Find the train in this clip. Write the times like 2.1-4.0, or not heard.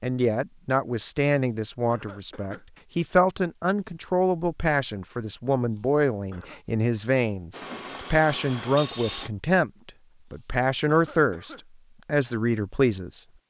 7.5-9.3.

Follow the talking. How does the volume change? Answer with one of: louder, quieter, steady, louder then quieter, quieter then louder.
steady.